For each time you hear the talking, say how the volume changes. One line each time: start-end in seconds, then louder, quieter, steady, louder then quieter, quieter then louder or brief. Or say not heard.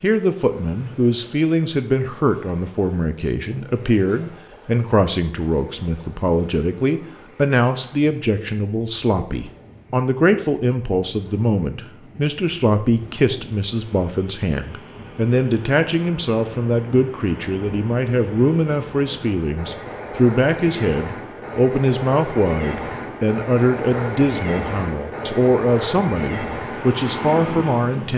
0.0-28.1 steady.